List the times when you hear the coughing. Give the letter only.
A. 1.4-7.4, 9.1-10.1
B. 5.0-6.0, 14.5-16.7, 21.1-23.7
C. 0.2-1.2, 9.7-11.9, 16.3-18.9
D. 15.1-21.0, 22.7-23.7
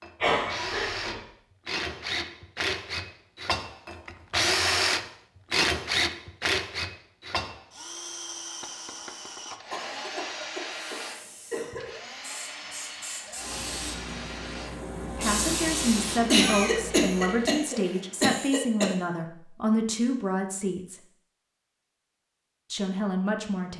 C.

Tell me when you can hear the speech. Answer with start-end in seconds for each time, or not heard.
15.1-21.0, 22.7-23.7.